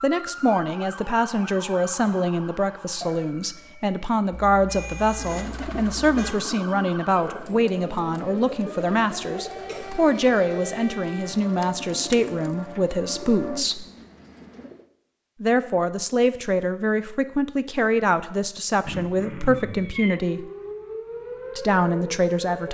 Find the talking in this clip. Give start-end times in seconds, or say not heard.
0.0-13.8, 15.4-20.4, 21.6-22.6.